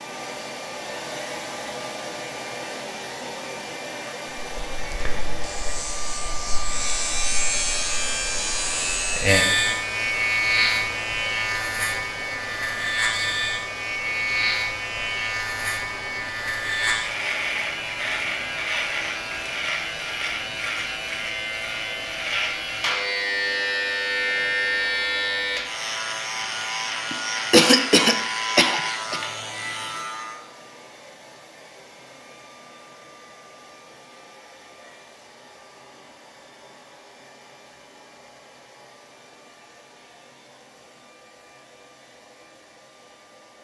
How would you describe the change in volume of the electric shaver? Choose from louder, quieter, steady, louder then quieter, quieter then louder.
steady.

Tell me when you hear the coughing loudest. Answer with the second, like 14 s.
28 s.